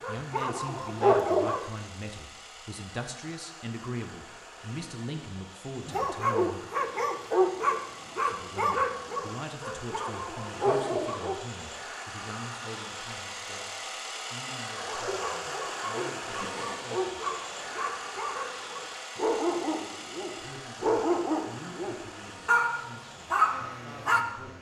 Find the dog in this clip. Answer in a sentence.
You can hear the dog from 0.0 to 1.6 s, from 5.8 to 11.3 s and from 14.8 to 24.2 s.